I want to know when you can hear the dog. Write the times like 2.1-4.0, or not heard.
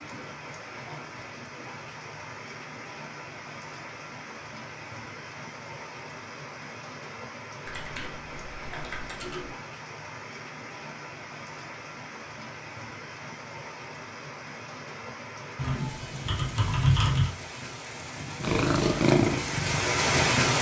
not heard.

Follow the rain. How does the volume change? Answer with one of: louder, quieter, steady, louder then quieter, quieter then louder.
louder.